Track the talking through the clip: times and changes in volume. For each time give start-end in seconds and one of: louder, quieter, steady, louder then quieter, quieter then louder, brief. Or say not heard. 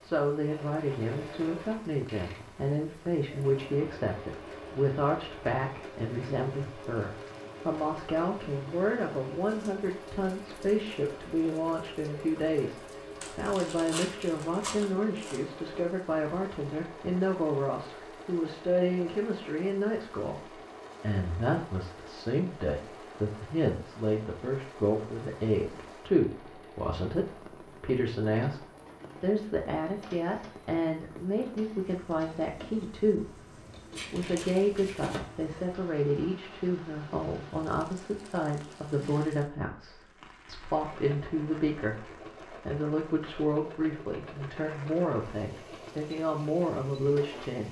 0.0-33.5 steady
34.1-47.6 steady.